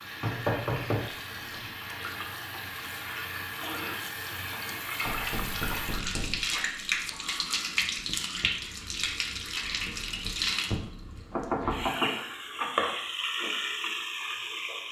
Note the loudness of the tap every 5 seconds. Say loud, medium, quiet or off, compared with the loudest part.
medium, loud, loud.